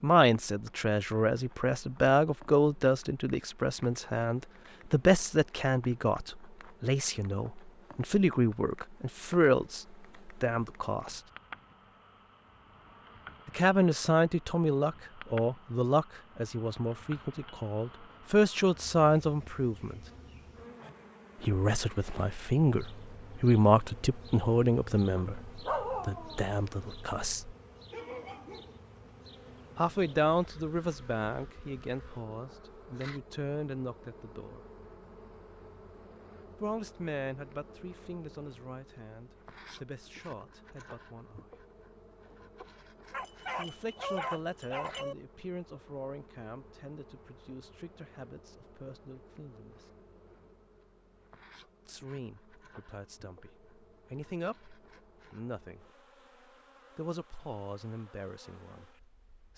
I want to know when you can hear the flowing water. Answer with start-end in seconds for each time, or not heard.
not heard.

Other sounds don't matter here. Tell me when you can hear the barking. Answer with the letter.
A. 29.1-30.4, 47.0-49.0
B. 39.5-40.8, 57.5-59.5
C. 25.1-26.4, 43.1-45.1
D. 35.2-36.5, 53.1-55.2
C.